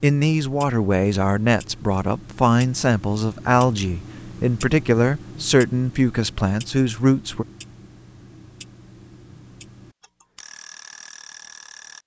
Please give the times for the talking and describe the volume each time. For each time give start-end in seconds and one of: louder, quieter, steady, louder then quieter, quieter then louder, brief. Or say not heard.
0.0-7.5 steady.